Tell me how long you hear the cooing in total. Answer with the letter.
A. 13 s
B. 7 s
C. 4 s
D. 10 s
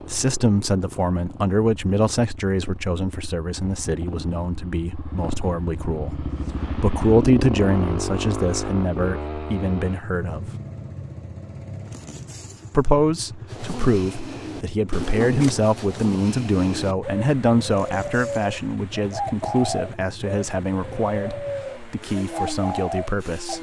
D.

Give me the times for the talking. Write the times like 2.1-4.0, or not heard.
0.1-10.4, 12.7-23.5.